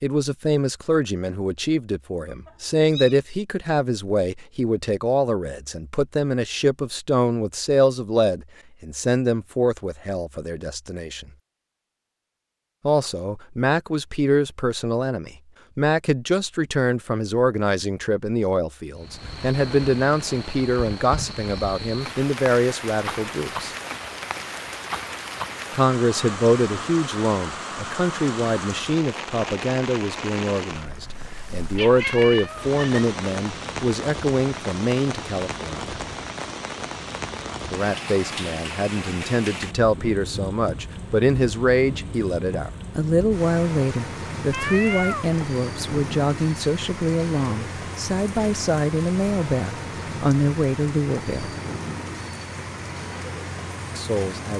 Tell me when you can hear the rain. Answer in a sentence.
The rain can be heard from 18.9 to 54.5 s.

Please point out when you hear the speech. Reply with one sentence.
The speech can be heard from 0.0 to 11.3 s, from 12.8 to 23.8 s, from 25.7 to 36.0 s, from 37.7 to 51.5 s and from 54.0 to 54.5 s.